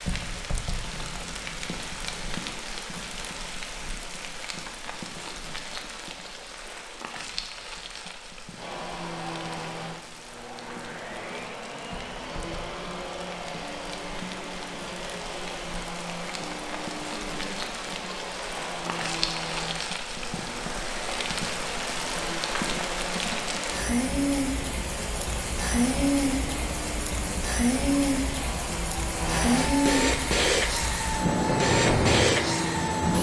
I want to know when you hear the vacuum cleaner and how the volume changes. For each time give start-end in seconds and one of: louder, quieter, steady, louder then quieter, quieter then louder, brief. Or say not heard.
8.6-33.1 louder.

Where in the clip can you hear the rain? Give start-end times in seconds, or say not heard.
0.0-33.1.